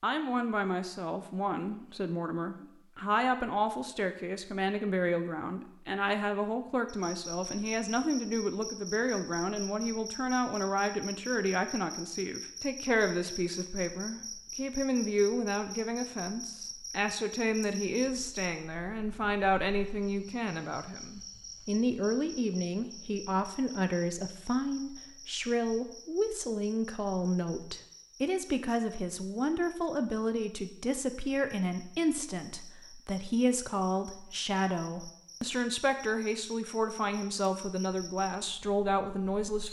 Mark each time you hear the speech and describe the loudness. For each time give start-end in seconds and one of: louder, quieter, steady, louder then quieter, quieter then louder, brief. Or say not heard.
0.0-39.6 steady.